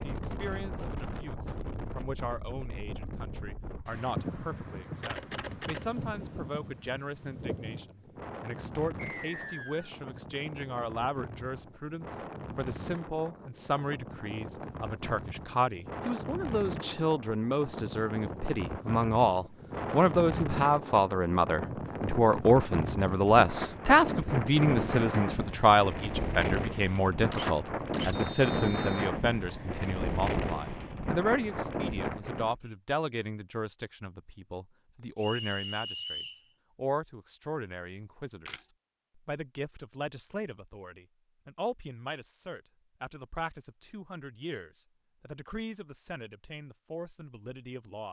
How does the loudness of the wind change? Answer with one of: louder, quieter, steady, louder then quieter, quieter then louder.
louder.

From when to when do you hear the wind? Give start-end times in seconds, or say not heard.
0.0-32.5.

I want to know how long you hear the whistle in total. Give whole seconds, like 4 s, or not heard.
3 s.